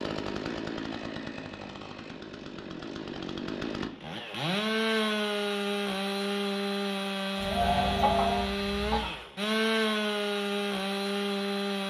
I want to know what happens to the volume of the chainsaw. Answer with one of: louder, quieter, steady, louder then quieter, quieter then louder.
louder.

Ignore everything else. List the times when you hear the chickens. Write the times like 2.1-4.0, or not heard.
7.3-9.2.